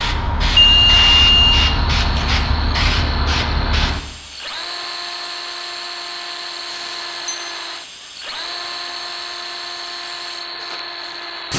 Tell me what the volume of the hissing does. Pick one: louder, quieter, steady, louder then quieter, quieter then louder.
quieter.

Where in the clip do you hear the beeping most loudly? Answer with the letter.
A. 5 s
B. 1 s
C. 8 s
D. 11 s
B.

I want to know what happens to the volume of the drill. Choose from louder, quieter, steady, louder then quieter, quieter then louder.
steady.